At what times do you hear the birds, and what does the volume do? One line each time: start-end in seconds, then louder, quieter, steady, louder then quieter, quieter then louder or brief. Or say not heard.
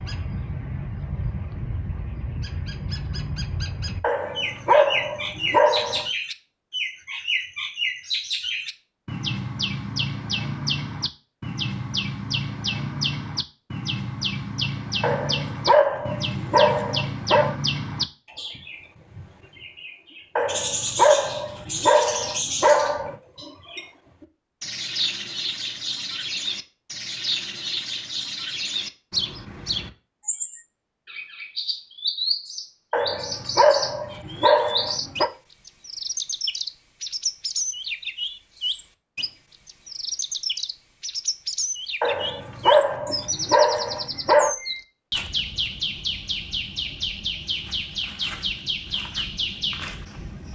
0.0-50.5 steady.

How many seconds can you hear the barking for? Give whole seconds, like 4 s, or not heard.
12 s.